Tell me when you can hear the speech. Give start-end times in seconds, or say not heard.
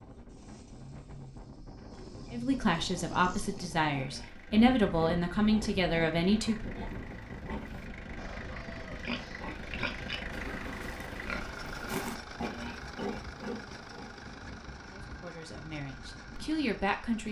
2.3-6.7, 14.9-17.2.